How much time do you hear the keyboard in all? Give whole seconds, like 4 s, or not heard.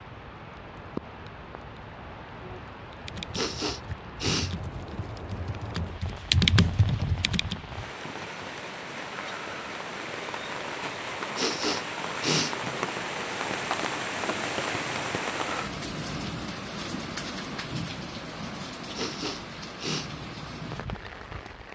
5 s.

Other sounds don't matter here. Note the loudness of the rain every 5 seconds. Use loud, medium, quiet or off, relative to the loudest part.
medium, medium, loud, loud, medium.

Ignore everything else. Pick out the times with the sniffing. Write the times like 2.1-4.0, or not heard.
3.3-4.5, 11.3-12.6, 18.9-20.1.